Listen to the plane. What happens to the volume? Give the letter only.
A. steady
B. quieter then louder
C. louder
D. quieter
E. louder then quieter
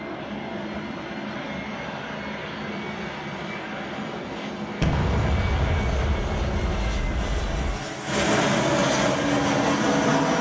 C.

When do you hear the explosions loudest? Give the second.
5 s.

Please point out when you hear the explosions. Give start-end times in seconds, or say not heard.
4.8-7.8.